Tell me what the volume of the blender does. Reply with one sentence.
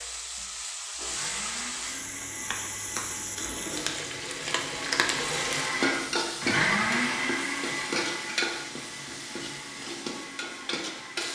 The volume of the blender goes up, then down.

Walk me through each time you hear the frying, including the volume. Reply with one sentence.
The frying can be heard from 0.0 to 11.2 s, getting louder then quieter.